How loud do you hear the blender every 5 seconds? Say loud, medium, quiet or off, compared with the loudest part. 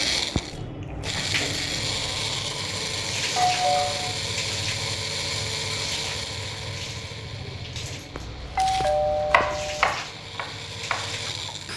loud, medium, medium.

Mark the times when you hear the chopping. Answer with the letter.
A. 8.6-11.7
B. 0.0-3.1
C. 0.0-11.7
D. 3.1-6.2
A.